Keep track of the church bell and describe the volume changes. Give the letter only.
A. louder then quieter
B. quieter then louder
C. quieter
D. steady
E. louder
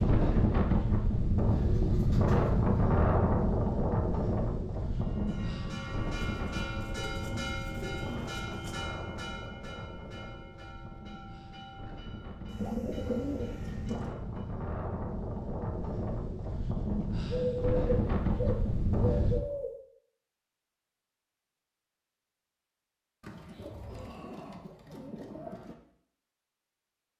C.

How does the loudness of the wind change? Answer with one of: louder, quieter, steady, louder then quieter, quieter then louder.
quieter then louder.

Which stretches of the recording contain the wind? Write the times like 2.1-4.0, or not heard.
0.0-19.4.